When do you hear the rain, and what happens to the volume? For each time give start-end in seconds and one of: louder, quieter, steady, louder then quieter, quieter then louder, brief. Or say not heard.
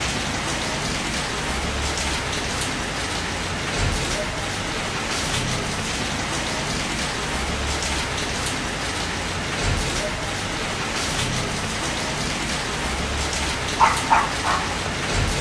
0.0-15.3 steady.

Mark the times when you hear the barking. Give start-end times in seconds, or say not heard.
13.8-15.3.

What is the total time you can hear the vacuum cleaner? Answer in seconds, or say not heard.
not heard.